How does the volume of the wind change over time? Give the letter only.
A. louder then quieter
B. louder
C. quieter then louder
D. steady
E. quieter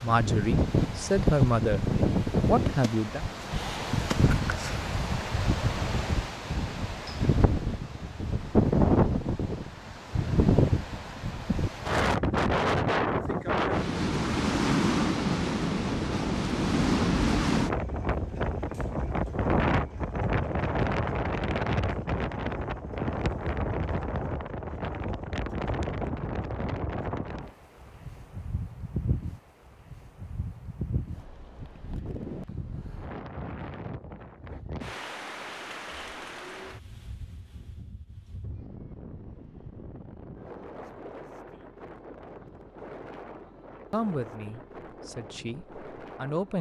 E.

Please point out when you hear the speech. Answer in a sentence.
The speech can be heard from 0.0 to 3.2 s and from 43.9 to 46.5 s.